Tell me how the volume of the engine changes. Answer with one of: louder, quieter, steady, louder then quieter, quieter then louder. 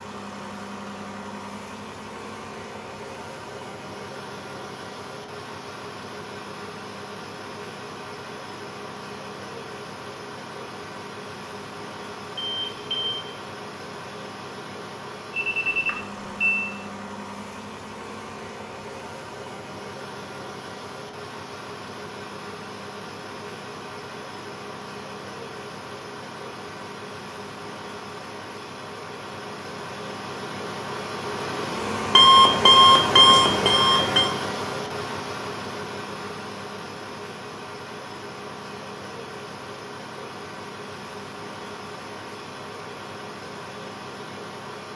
louder then quieter.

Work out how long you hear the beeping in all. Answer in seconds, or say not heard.
4 s.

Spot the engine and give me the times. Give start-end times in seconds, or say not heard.
0.0-44.9.